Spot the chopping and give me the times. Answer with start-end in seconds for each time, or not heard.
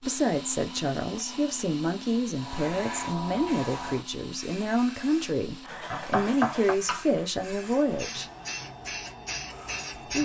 5.9-7.0.